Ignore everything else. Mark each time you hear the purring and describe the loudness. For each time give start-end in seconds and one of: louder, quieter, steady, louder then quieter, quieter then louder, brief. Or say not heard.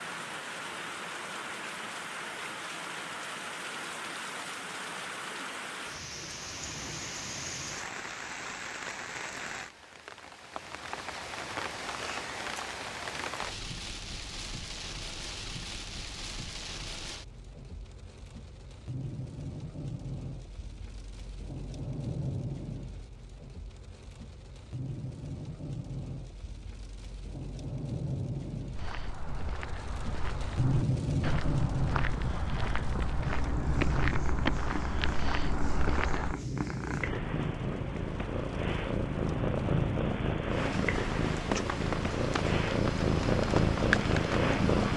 31.9-44.9 louder.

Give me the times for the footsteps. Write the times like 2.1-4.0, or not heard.
28.7-36.4.